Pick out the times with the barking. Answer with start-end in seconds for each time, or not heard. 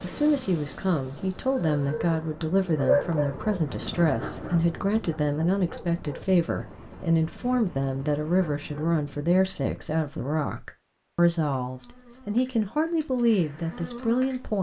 1.5-8.9.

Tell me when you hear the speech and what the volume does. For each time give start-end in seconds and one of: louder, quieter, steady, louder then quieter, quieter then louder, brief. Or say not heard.
0.0-14.5 steady.